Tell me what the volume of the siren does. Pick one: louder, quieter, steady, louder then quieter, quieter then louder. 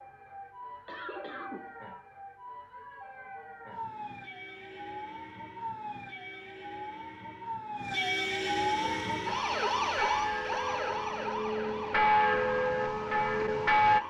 louder then quieter.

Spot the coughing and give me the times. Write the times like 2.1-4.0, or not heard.
0.8-1.8.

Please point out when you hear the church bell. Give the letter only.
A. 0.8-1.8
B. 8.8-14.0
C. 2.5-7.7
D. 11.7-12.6
B.